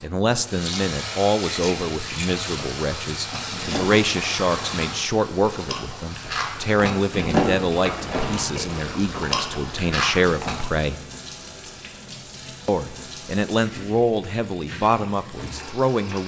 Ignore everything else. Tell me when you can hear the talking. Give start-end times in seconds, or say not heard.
0.0-10.9, 12.7-16.2.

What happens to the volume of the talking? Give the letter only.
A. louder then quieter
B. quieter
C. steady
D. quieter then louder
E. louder
C.